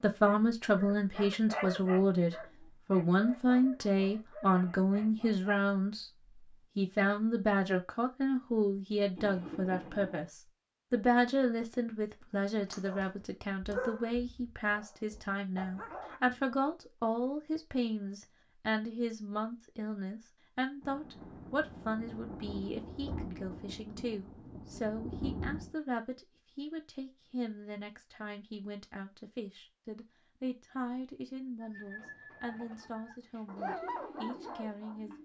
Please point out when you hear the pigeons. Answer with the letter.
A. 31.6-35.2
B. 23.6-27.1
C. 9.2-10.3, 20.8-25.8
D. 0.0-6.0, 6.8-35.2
A.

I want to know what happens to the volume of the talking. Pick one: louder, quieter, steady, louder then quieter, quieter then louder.
quieter.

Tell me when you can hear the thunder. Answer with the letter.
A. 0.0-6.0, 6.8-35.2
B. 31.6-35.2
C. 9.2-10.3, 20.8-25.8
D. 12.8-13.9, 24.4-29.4
C.